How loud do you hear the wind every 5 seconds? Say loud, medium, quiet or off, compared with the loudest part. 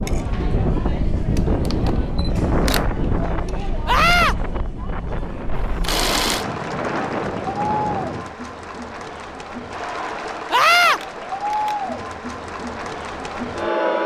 loud, loud, off.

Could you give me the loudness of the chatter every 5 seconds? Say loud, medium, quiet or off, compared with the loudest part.
medium, loud, loud.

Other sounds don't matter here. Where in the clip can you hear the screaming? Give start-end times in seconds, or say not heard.
3.9-4.3, 10.5-11.0.